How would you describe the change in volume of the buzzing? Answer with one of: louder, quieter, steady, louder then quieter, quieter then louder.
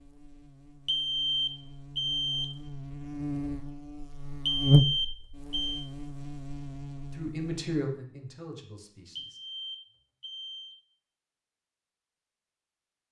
louder then quieter.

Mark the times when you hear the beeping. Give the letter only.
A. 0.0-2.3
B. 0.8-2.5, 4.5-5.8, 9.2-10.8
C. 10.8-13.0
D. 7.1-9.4
B.